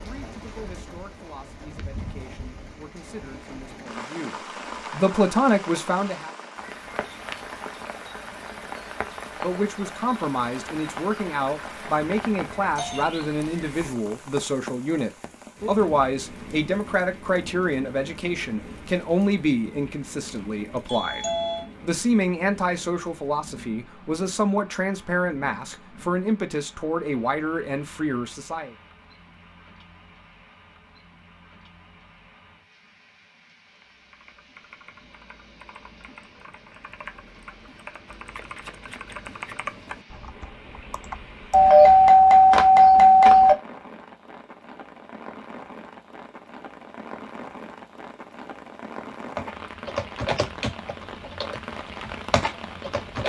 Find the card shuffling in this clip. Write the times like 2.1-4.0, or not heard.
38.4-39.5.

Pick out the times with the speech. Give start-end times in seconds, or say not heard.
0.0-6.3, 9.4-28.8.